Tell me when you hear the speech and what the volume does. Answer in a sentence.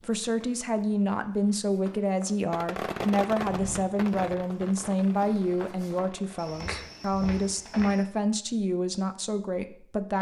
You can hear the speech from 0.0 to 10.1 s, at a steady volume.